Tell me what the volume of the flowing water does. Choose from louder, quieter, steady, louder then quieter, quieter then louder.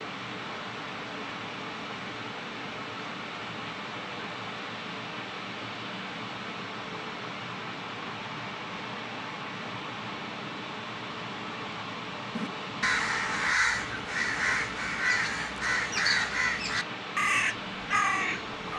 steady.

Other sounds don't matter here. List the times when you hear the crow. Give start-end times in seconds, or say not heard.
12.3-18.7.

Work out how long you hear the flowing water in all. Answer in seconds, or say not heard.
19 s.